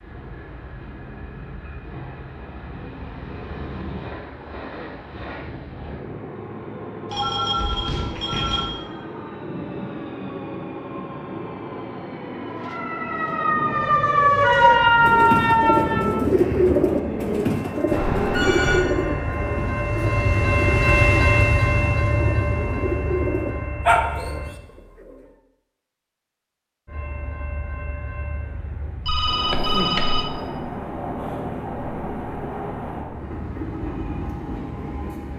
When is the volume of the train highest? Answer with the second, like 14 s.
21 s.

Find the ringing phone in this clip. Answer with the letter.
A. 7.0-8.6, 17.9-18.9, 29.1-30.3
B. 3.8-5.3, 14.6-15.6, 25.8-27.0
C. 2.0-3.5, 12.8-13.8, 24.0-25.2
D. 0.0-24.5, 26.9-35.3
A.